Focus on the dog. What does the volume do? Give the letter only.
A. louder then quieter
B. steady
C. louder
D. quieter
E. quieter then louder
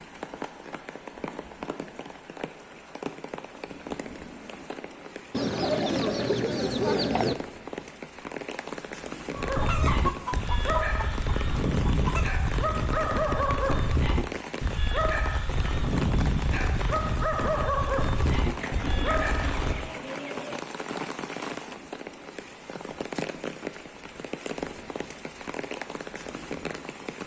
B.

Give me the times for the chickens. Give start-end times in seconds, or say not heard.
5.3-7.3, 9.6-12.3, 18.6-20.6.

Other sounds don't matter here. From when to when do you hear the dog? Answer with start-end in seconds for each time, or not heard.
9.3-19.9.